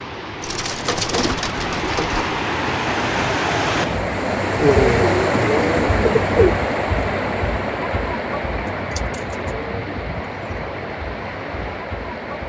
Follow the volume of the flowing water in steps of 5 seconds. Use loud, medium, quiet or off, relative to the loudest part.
loud, loud, medium.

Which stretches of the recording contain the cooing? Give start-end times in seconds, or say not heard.
0.4-2.4, 4.5-6.5, 8.7-10.7.